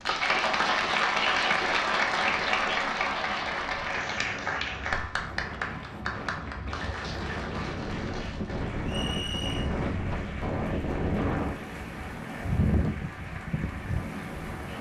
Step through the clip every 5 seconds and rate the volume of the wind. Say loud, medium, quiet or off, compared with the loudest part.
quiet, loud, loud.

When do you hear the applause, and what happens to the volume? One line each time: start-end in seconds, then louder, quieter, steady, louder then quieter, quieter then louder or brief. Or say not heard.
0.0-14.7 quieter.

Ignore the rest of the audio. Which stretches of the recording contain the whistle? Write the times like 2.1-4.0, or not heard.
8.8-9.7.